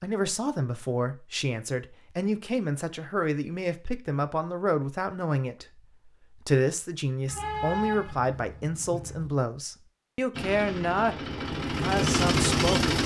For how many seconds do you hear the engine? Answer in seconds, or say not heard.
3 s.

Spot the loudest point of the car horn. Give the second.
8 s.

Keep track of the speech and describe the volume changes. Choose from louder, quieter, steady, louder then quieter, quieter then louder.
steady.